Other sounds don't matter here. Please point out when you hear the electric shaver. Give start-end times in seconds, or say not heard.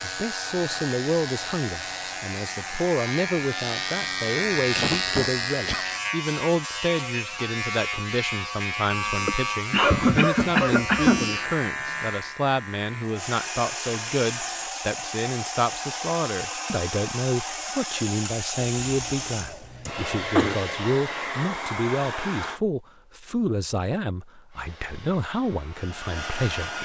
0.0-14.8.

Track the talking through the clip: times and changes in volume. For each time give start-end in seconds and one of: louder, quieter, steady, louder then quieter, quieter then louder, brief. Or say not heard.
0.0-26.8 steady.